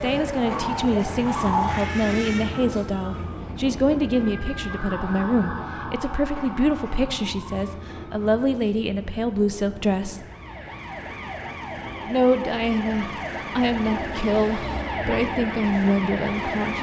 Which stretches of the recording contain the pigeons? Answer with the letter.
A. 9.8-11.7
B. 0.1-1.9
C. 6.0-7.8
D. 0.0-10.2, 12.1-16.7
B.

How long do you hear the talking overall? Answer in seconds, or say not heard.
15 s.